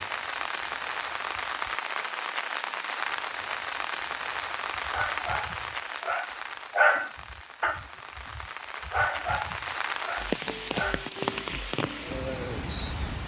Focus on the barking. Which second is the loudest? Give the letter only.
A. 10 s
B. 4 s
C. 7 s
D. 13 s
C.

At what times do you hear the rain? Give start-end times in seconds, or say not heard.
0.0-13.2.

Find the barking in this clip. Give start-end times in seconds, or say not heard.
4.8-11.1.